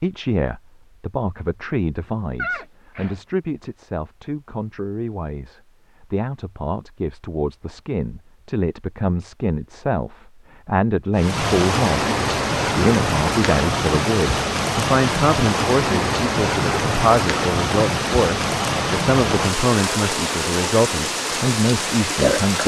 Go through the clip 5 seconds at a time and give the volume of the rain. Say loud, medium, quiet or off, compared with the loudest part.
off, off, loud, loud, loud.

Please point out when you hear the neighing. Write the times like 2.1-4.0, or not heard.
2.4-3.1.